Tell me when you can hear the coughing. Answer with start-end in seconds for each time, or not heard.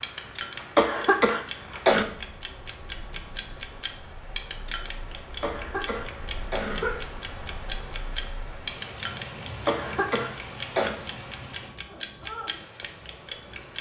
0.8-2.0, 5.4-7.0, 9.7-10.9.